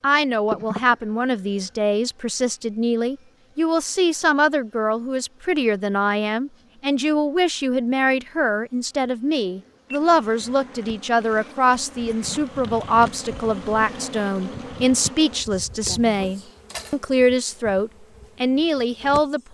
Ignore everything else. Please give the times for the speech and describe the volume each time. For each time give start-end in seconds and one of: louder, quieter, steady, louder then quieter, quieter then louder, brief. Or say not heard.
0.0-19.5 steady.